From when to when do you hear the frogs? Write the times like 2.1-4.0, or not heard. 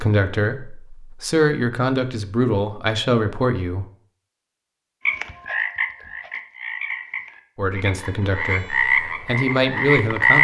5.0-10.3.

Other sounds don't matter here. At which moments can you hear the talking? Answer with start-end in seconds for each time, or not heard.
0.0-3.9, 7.5-10.3.